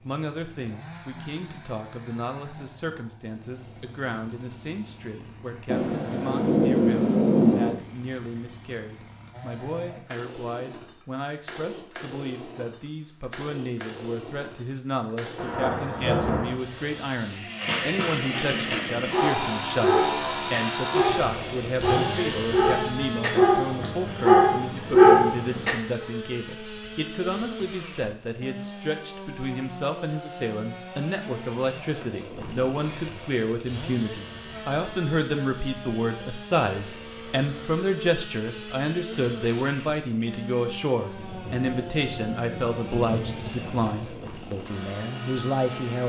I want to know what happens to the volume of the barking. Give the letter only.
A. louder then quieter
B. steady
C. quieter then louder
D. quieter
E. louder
E.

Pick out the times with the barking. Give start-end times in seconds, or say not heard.
18.2-25.8.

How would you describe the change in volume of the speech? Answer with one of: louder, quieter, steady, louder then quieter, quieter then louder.
louder.